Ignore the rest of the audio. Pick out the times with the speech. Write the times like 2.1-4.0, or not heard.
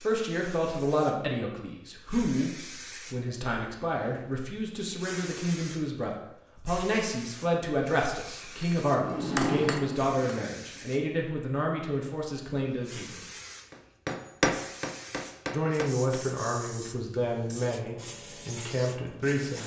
0.0-13.2, 15.5-19.6.